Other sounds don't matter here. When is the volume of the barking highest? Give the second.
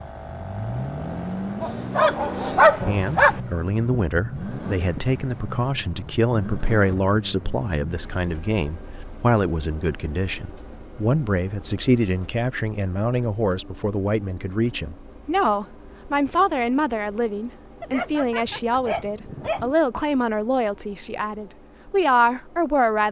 3 s.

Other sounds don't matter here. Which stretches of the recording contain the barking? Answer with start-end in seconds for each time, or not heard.
1.6-3.4, 17.8-19.8.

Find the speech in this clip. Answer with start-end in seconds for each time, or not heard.
2.2-23.0.